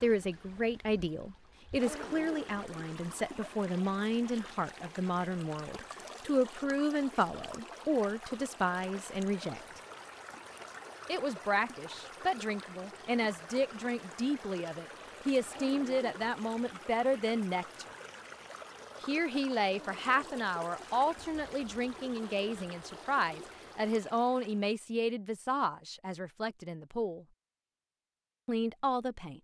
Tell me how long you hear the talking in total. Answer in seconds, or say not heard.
26 s.